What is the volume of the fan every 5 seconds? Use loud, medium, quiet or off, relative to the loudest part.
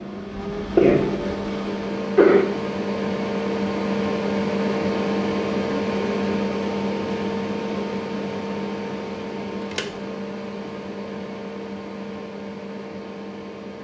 loud, loud, medium.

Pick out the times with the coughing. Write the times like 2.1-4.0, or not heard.
0.5-2.5.